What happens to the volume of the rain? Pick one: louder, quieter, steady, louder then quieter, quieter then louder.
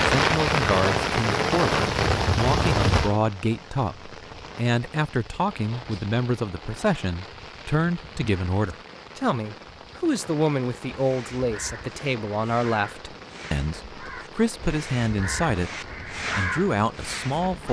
quieter.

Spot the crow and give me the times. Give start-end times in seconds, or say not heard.
10.8-17.6.